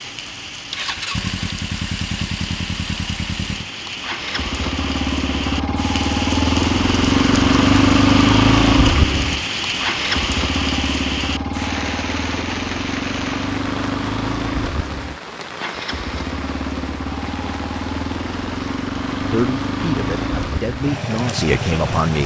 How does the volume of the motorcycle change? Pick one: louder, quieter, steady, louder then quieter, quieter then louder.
louder then quieter.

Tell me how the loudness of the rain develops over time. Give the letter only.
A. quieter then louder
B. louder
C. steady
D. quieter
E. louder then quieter
E.